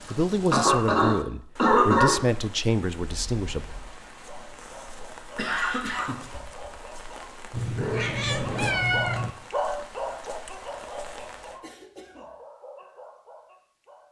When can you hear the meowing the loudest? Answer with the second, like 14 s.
9 s.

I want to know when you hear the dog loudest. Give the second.
10 s.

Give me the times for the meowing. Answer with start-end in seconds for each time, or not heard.
3.0-3.9, 7.5-9.3.